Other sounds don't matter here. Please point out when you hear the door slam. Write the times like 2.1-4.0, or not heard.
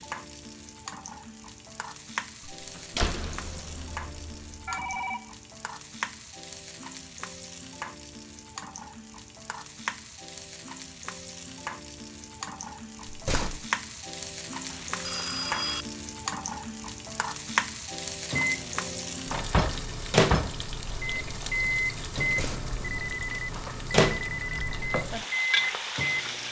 2.5-4.9, 13.1-13.7, 22.2-22.8.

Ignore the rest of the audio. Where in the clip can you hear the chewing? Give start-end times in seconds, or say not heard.
not heard.